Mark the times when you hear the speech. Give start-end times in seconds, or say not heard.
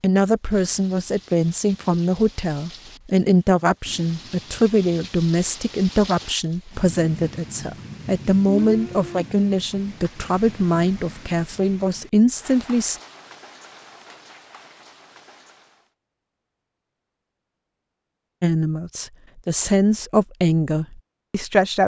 0.0-13.0, 18.4-21.8.